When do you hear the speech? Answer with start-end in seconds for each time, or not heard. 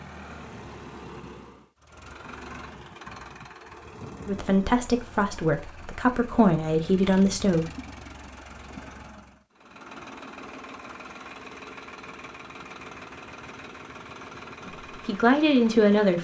4.2-7.7, 14.7-16.1.